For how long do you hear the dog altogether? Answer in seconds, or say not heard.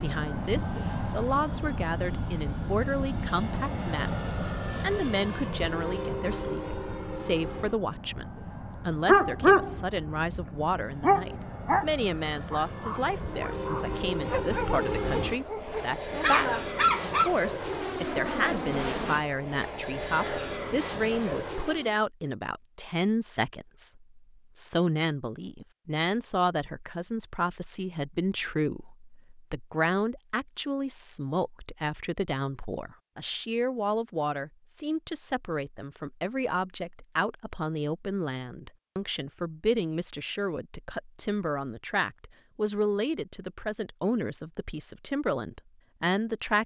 8 s.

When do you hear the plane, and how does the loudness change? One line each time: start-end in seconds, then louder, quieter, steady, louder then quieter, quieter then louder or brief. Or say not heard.
0.0-21.9 quieter then louder.